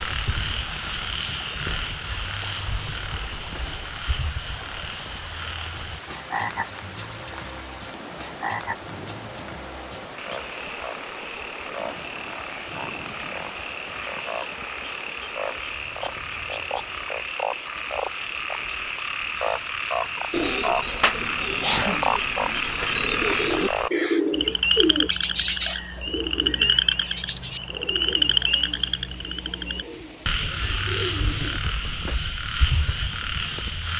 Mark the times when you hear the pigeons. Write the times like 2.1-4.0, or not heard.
20.3-31.6.